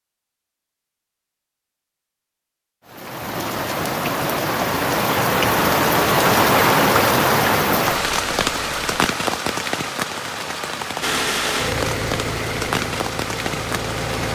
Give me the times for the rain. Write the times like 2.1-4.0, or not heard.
2.9-14.2.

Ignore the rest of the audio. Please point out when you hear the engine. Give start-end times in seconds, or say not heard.
11.0-14.2.